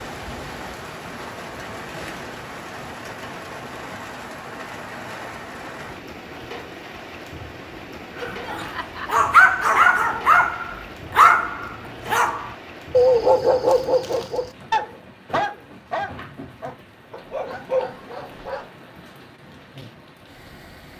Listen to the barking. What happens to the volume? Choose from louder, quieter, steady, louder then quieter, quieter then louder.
quieter.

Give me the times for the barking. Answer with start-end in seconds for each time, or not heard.
8.2-18.6.